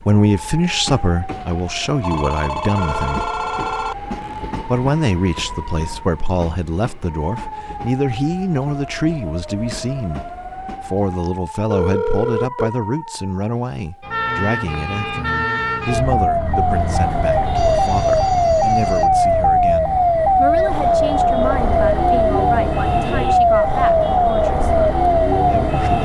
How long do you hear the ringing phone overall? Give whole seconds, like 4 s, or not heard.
5 s.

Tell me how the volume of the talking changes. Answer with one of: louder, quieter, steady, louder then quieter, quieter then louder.
quieter.